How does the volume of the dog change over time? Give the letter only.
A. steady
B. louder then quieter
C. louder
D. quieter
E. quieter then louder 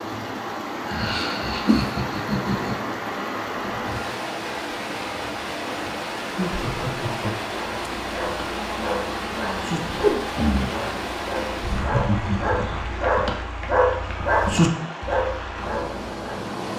C.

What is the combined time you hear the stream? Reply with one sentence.
The stream can be heard for 17 seconds in total.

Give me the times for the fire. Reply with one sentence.
You can't hear the fire here.